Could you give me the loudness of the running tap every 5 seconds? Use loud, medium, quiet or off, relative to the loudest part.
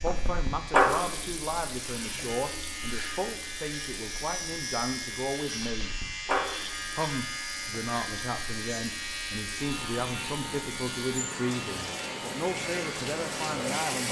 loud, medium, loud.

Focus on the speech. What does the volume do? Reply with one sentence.
The loudness of the speech stays about the same.